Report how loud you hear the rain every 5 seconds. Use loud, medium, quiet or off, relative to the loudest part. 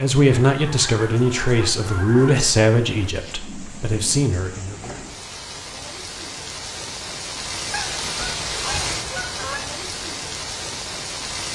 medium, loud, loud.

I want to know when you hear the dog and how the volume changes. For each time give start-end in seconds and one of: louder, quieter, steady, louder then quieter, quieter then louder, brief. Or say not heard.
not heard.